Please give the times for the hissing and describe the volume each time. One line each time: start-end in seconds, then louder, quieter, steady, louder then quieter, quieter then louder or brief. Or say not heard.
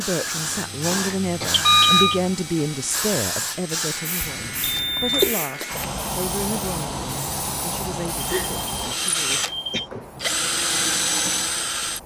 0.0-12.0 quieter.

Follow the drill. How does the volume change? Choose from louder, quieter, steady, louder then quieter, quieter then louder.
louder.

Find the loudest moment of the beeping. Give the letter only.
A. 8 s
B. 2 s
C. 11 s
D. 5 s
B.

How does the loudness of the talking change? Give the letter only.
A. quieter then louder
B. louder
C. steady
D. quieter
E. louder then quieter
D.